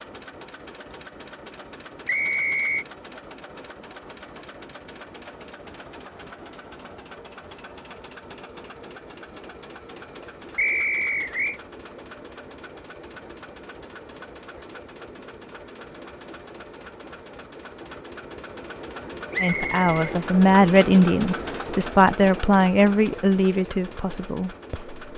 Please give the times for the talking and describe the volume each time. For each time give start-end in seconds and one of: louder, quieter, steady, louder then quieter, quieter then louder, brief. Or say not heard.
19.4-24.9 quieter.